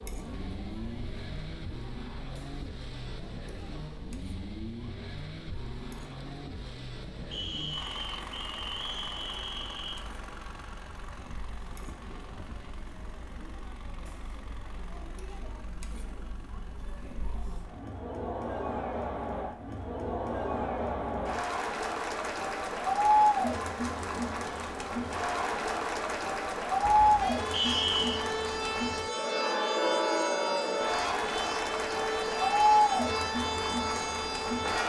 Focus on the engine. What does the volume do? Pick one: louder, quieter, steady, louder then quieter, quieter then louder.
quieter.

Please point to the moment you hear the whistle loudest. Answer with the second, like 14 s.
28 s.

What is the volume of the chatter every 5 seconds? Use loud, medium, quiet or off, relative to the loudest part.
quiet, quiet, quiet, medium, loud, loud, loud.